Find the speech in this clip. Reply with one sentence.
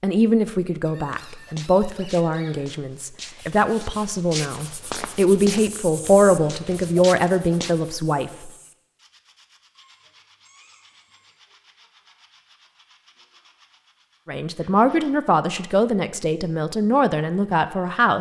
You can hear the speech from 0.0 to 8.5 s and from 14.2 to 18.1 s.